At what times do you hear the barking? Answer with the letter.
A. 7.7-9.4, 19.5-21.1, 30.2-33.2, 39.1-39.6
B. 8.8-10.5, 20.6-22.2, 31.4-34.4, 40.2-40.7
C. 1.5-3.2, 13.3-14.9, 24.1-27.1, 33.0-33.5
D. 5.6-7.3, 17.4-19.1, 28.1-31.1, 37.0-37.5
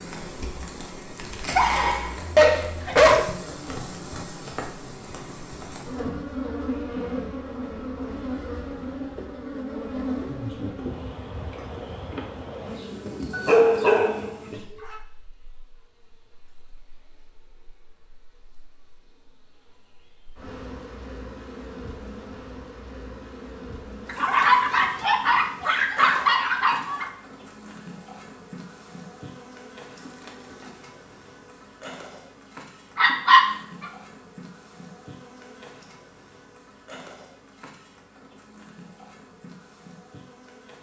C.